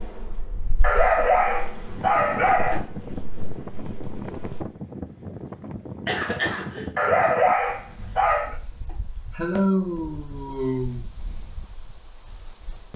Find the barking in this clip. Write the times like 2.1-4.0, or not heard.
0.8-2.8, 7.0-8.6.